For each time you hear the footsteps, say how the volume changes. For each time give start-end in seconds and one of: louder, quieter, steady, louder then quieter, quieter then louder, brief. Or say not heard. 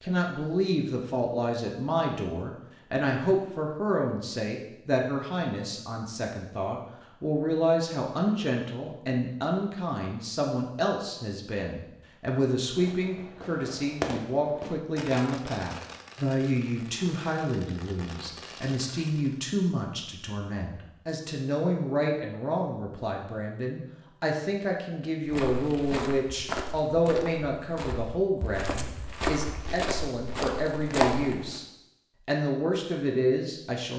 25.2-31.6 quieter then louder.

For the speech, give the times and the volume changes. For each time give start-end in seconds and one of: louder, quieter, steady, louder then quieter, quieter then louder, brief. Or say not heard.
0.0-31.6 steady
32.2-33.9 brief.